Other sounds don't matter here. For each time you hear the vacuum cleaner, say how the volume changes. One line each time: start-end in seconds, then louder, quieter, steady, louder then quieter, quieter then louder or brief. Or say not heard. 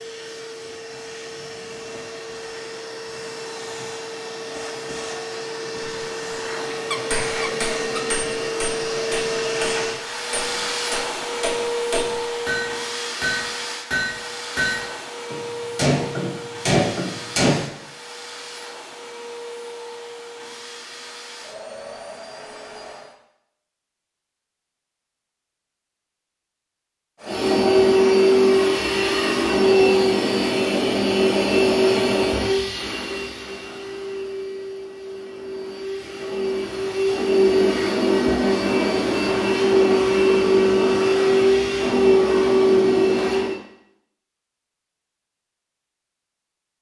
0.0-23.1 louder then quieter
27.2-43.6 quieter then louder.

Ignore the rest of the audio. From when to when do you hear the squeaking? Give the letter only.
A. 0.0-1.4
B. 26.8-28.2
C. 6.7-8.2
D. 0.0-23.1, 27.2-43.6
C.